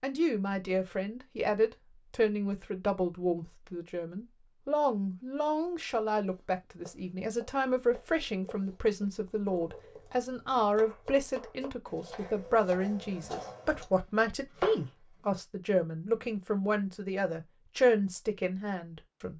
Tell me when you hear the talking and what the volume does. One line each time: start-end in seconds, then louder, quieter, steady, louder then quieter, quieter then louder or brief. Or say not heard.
0.0-19.3 steady.